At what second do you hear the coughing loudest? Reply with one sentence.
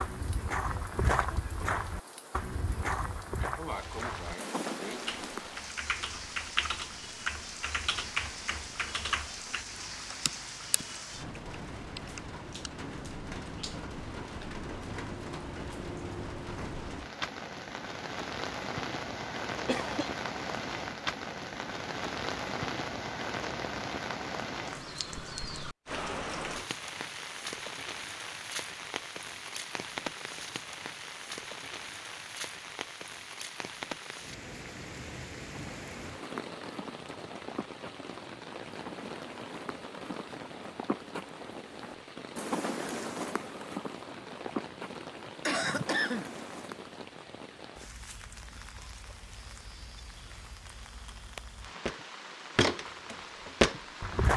The loudest moment of the coughing is at 46 seconds.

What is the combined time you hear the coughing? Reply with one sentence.
You can hear the coughing for 3 seconds altogether.